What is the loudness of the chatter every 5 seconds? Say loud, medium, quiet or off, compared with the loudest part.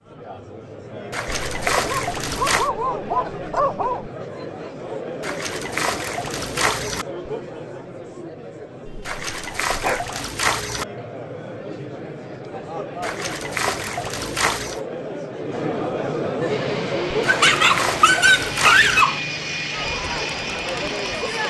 medium, medium, medium, loud, loud.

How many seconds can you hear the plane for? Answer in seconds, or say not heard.
5 s.